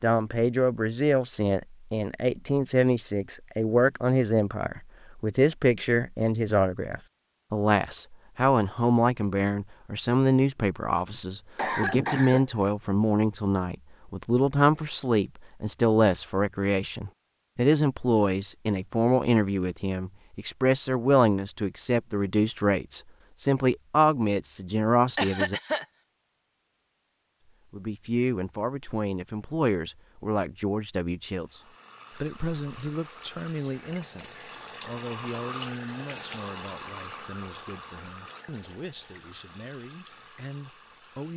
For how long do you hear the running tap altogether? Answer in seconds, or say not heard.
10 s.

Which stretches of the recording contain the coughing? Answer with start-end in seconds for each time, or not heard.
11.1-12.5, 25.1-25.9.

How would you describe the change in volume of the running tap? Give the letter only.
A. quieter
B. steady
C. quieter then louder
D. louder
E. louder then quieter
E.